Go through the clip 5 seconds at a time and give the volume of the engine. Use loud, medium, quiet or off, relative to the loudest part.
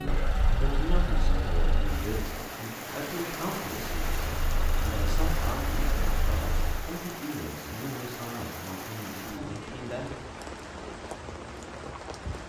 loud, loud, off.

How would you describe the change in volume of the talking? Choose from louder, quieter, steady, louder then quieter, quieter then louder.
steady.